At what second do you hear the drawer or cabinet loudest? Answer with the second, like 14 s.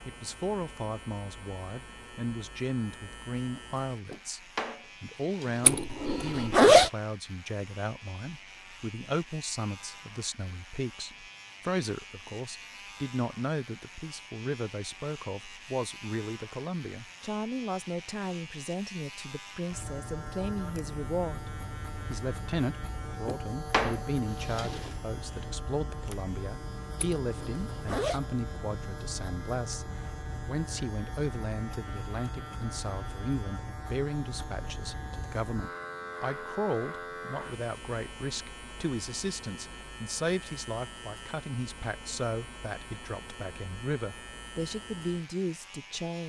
24 s.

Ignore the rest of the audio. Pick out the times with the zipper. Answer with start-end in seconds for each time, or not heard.
5.6-6.9, 26.9-28.2.